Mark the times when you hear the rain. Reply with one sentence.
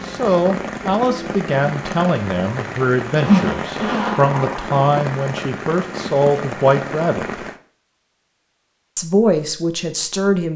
The rain can be heard from 0.0 to 7.6 s.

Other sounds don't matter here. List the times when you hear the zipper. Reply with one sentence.
You can hear the zipper from 3.0 to 4.7 s.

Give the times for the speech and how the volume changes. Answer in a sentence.
You can hear the speech from 0.1 to 7.4 s, at a steady volume; and briefly from 8.9 to 10.5 s.